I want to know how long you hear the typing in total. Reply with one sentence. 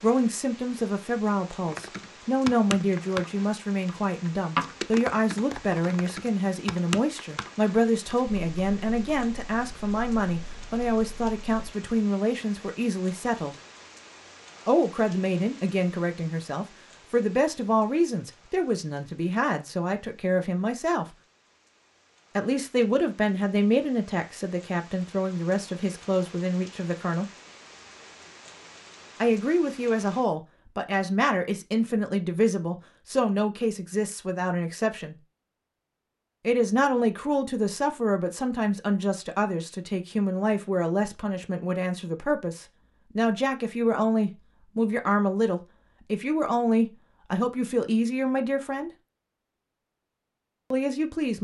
The typing can be heard for 10 seconds in total.